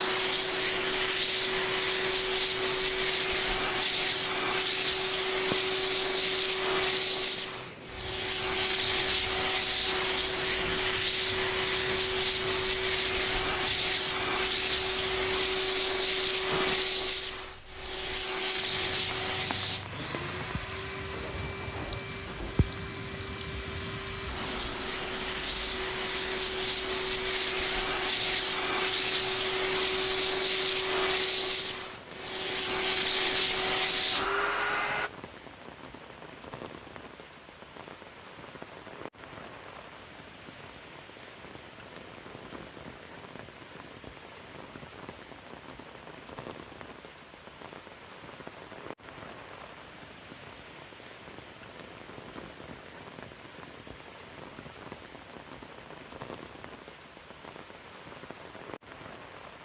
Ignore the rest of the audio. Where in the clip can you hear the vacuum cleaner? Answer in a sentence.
You can hear the vacuum cleaner from 0.0 to 35.1 s.